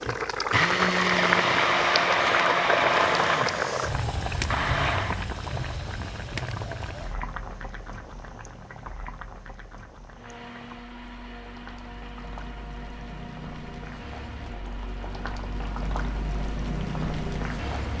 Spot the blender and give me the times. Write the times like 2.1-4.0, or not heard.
0.0-5.2, 10.1-17.9.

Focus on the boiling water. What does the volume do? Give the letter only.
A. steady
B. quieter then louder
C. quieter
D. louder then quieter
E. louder
B.